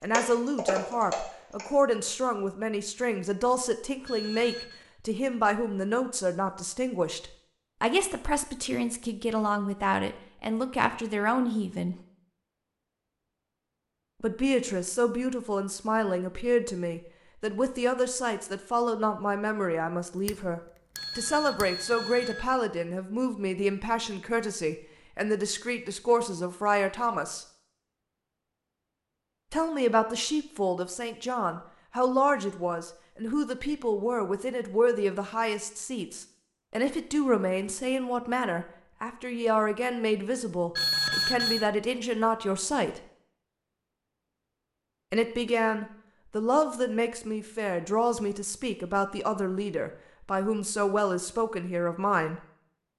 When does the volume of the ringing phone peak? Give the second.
41 s.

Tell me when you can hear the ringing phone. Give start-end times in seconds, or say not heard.
4.0-4.8, 20.9-22.4, 40.8-41.6.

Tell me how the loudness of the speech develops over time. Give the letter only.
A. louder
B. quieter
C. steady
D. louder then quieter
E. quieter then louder
C.